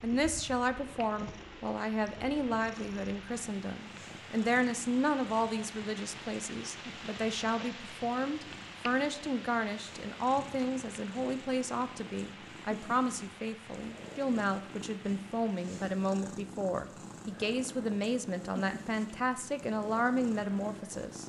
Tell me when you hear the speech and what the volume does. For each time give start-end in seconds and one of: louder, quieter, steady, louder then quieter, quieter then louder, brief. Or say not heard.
0.0-21.2 steady.